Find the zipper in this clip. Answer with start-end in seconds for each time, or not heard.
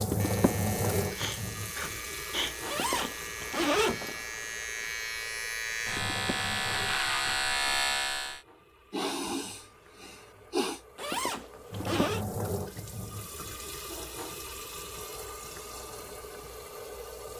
2.6-4.2, 10.9-12.2.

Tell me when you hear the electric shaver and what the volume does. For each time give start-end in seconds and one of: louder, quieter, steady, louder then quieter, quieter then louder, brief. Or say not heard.
0.1-8.4 louder.